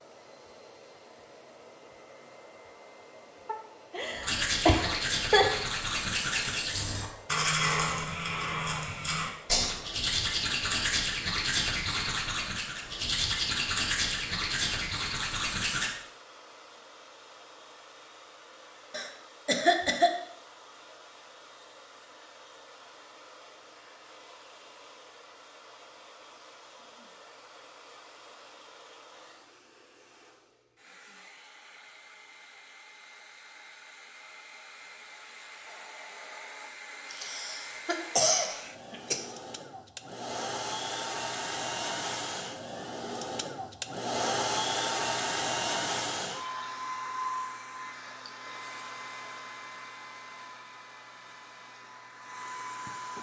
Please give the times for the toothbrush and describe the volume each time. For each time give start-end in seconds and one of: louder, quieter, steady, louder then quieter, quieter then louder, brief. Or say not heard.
4.2-15.9 steady.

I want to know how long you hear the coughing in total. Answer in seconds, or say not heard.
5 s.